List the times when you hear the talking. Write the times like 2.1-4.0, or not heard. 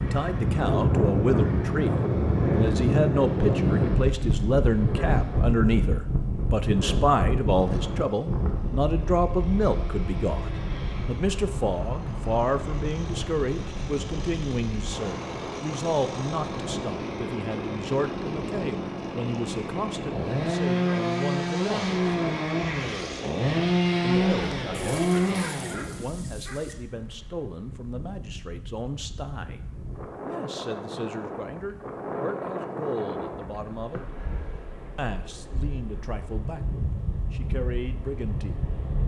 0.0-22.0, 24.0-29.6, 30.2-34.0, 35.0-38.7.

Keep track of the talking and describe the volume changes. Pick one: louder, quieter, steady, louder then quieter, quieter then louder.
quieter.